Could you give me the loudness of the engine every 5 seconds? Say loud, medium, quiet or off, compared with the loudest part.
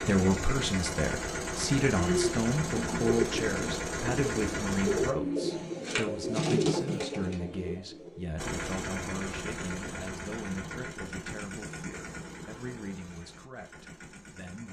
loud, loud, medium.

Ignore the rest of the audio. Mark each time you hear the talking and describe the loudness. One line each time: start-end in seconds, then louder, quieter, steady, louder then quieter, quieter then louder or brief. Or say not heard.
0.0-14.6 quieter.